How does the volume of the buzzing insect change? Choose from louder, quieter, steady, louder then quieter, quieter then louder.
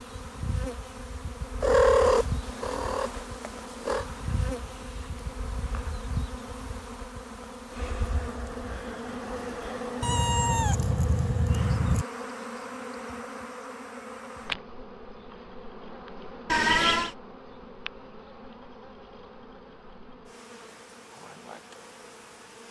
quieter.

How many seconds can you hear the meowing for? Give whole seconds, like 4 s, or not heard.
5 s.